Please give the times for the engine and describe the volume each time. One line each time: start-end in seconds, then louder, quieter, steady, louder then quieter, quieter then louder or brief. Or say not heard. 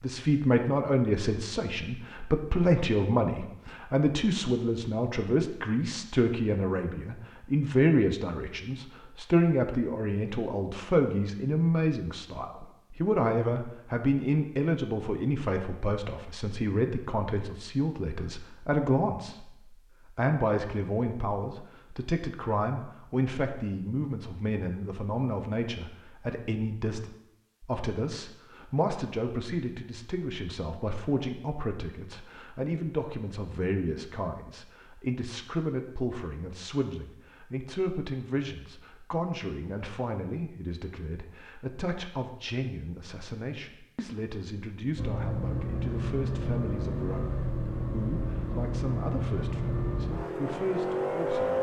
45.0-51.5 steady.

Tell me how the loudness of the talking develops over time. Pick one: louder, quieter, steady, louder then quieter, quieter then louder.
quieter.